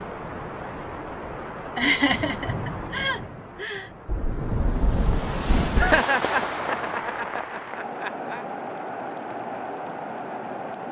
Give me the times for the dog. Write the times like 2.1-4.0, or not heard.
not heard.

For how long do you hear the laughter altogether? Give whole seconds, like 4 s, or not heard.
5 s.